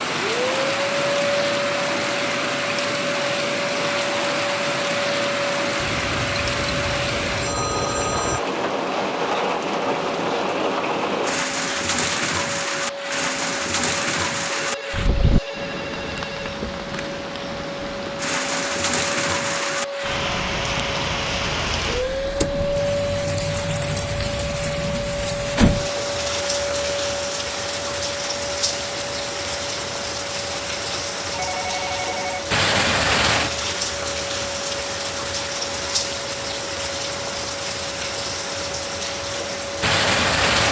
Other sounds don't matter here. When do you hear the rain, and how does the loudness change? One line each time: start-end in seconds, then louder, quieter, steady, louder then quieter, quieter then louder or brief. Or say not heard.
0.0-40.6 steady.